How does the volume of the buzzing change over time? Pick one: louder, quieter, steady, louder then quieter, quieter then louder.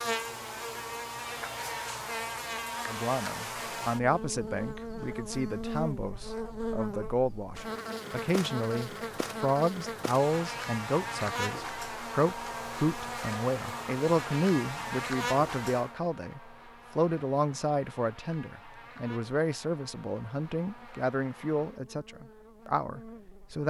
quieter.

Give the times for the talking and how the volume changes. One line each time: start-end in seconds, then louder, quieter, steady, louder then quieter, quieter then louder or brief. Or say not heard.
2.9-23.6 steady.